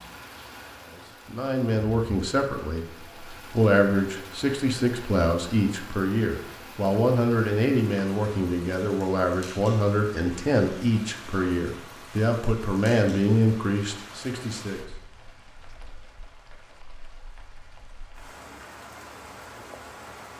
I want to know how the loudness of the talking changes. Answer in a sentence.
The volume of the talking stays about the same.